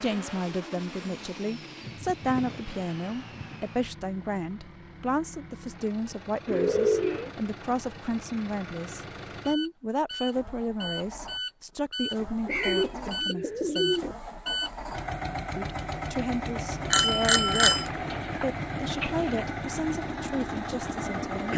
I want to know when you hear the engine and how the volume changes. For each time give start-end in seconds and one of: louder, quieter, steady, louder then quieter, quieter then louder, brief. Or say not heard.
0.0-21.5 louder.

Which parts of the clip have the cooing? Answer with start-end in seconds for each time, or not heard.
1.8-3.6, 6.5-7.3, 12.4-14.2, 17.8-19.4.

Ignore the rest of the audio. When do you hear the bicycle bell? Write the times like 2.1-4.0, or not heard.
16.9-17.9.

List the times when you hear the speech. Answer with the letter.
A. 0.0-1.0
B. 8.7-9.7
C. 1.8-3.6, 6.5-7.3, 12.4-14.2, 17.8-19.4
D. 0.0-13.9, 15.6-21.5
D.